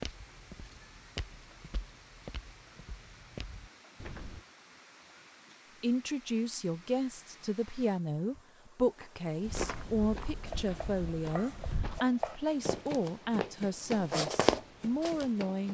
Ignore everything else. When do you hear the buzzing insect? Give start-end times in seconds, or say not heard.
not heard.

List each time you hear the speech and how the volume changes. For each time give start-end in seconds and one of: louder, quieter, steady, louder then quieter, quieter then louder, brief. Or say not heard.
5.8-15.6 steady.